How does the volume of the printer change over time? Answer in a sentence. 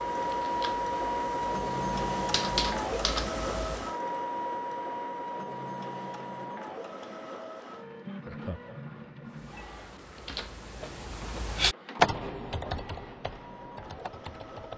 The volume of the printer goes down.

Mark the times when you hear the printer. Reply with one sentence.
You can hear the printer from 0.0 to 14.7 s.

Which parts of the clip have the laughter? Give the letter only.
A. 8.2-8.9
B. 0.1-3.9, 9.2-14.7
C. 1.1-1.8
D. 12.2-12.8
A.